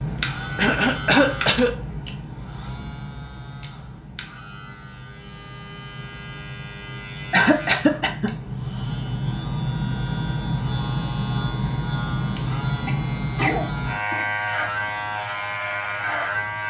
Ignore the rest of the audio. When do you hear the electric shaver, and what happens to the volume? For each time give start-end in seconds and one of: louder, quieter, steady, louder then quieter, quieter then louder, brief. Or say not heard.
0.0-16.6 quieter then louder.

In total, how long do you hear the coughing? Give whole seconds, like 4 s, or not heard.
4 s.